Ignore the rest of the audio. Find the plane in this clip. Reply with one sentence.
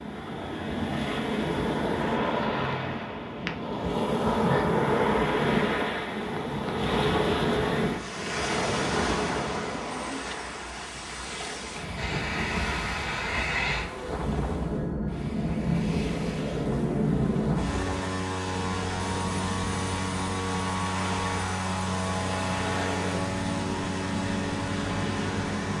The plane can be heard from 11.9 to 25.7 s.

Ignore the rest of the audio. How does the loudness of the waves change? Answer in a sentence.
The loudness of the waves goes down.